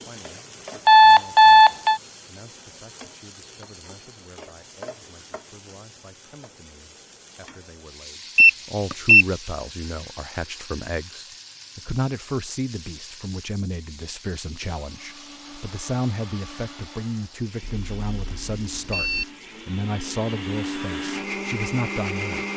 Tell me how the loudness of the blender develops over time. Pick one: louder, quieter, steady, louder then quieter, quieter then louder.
louder.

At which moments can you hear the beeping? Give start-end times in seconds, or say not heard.
0.8-2.0, 8.3-9.2, 17.6-19.2.